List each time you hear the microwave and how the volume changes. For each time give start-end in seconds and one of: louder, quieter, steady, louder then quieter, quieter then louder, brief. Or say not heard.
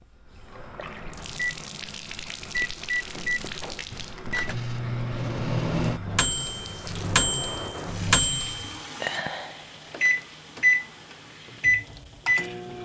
0.1-12.8 louder.